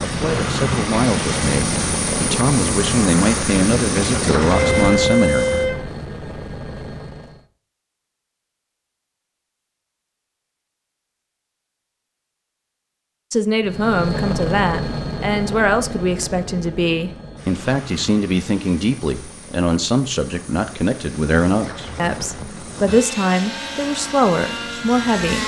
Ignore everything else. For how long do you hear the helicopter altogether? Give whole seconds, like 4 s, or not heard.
19 s.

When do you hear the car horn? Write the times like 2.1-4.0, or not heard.
4.5-5.8.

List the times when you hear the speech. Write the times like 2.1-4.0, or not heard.
0.0-5.5, 13.3-25.4.